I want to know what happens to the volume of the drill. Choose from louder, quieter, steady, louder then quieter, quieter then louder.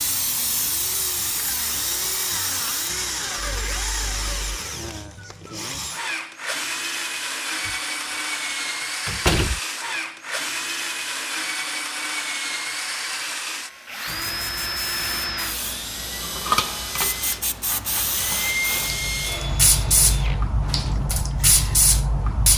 steady.